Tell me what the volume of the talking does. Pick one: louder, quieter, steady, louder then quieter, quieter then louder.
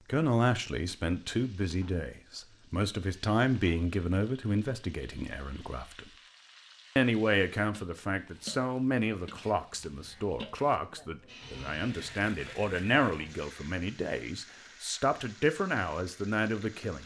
steady.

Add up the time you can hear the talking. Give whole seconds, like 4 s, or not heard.
16 s.